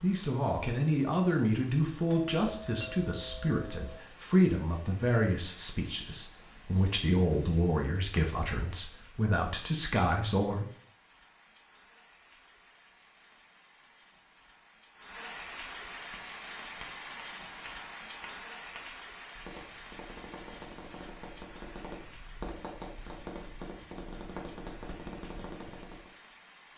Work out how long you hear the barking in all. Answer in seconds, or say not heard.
not heard.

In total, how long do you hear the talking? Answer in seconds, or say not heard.
11 s.